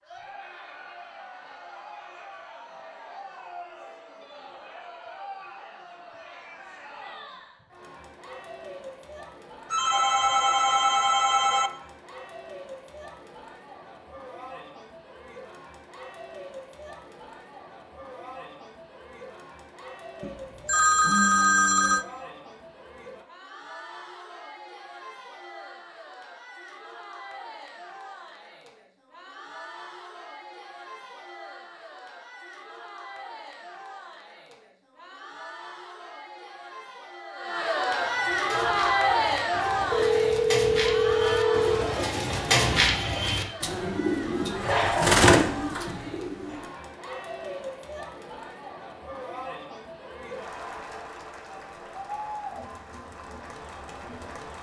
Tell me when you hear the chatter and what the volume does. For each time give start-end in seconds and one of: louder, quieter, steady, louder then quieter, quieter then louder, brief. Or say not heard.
0.0-54.5 louder then quieter.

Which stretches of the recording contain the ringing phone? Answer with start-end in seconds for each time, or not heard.
9.7-11.7, 20.2-22.1, 39.9-41.9.